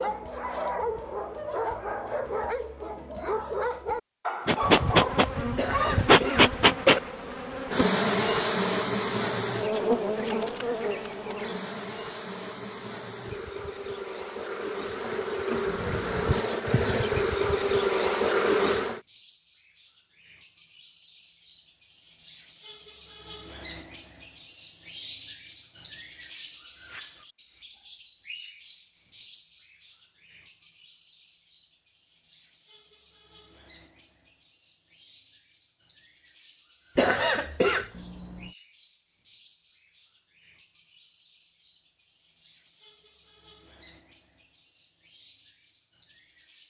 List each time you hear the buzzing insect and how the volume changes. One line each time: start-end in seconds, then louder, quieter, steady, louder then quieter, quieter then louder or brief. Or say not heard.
4.5-19.0 quieter then louder.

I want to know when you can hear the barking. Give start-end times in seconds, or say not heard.
0.0-6.0.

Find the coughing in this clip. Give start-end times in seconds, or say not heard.
5.5-7.0, 37.0-37.9.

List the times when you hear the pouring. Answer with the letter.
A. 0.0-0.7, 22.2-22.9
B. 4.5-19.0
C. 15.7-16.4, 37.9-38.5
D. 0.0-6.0
C.